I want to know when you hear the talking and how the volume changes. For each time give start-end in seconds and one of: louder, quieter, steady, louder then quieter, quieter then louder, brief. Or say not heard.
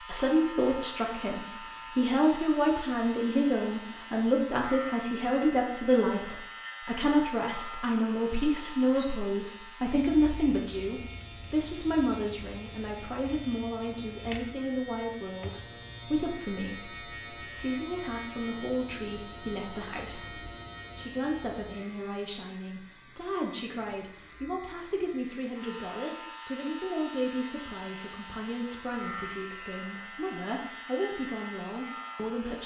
0.0-32.6 quieter.